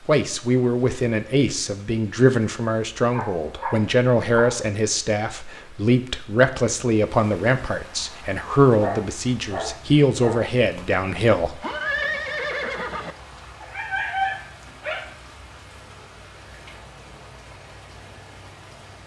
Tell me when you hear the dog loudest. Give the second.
14 s.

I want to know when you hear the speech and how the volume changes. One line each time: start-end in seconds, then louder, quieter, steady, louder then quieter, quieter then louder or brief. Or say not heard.
0.0-11.6 steady.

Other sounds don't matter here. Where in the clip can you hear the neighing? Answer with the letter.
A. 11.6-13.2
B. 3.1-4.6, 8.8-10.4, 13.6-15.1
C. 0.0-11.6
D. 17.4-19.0
A.